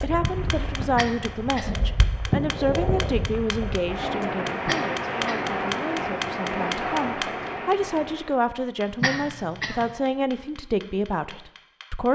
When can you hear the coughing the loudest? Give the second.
9 s.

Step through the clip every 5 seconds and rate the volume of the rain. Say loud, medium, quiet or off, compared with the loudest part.
loud, loud, off.